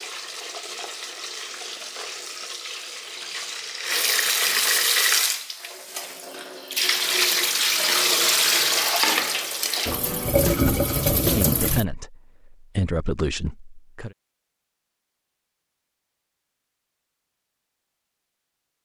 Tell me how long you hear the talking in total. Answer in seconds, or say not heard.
3 s.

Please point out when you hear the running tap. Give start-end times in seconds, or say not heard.
0.0-11.8.